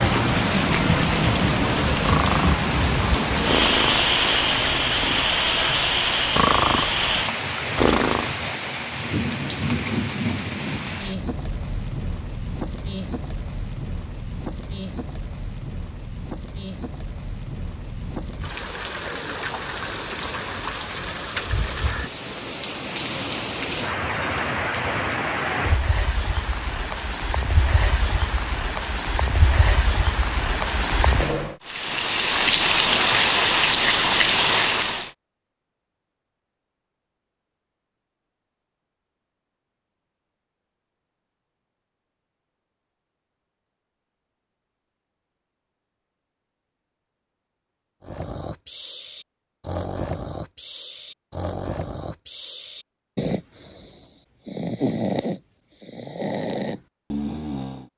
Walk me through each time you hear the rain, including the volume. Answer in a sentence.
You can hear the rain from 0.0 to 35.1 s, getting quieter then louder.